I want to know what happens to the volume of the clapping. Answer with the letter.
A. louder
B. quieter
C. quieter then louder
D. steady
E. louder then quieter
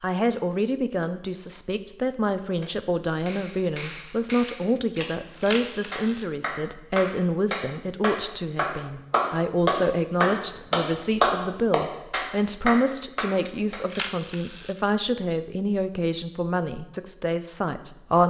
E.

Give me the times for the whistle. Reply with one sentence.
You can't hear the whistle here.